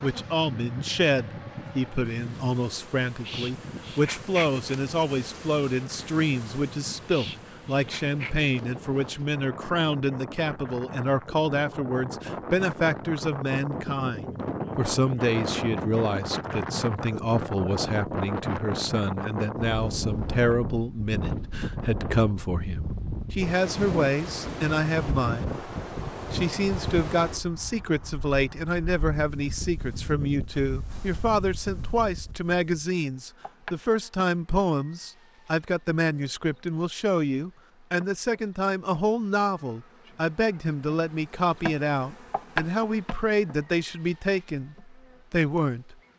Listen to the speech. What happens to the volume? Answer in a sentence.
The volume of the speech stays about the same.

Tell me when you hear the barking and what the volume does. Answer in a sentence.
The barking can't be heard in this clip.